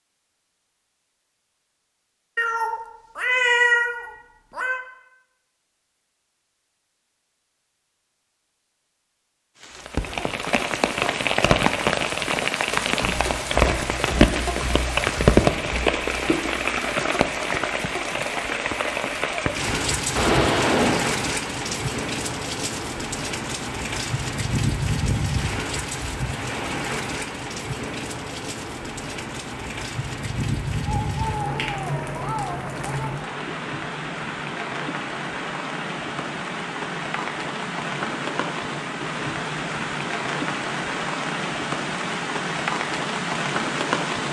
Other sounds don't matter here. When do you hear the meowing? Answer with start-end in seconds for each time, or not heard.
2.4-4.8, 20.1-21.1, 30.9-33.3.